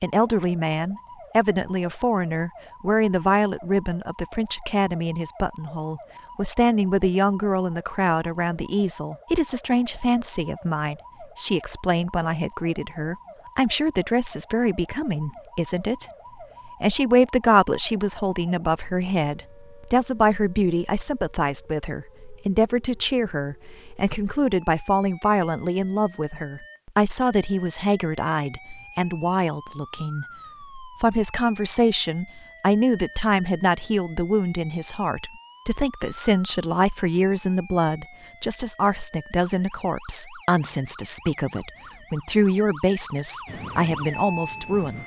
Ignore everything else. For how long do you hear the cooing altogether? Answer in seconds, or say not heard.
not heard.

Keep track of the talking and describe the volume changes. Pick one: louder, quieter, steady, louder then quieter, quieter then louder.
steady.